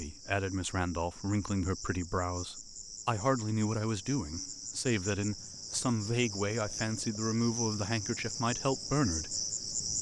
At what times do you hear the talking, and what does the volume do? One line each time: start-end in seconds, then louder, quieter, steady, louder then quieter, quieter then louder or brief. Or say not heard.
0.0-9.9 steady.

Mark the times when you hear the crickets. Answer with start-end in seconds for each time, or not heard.
0.0-9.9.